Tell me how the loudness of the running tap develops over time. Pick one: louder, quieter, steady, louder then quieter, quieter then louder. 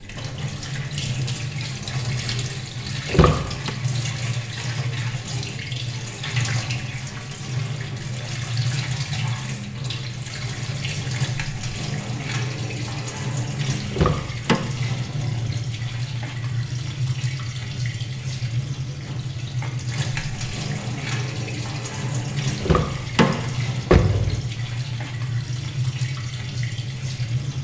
steady.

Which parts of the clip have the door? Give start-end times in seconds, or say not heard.
3.0-3.7, 13.9-14.7, 22.6-24.5.